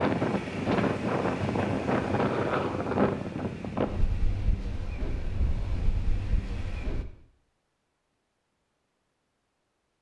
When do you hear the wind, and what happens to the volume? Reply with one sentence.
The wind can be heard from 0.0 to 7.0 s, getting quieter.